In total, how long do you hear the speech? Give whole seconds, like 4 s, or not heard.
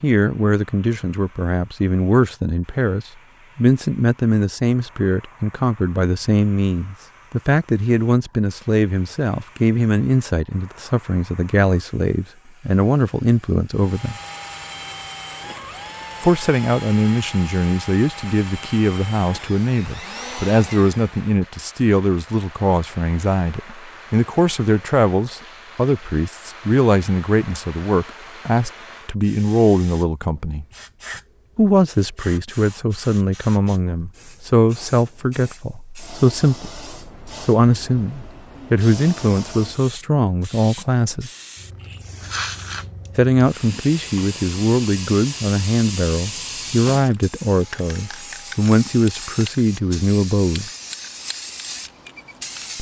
46 s.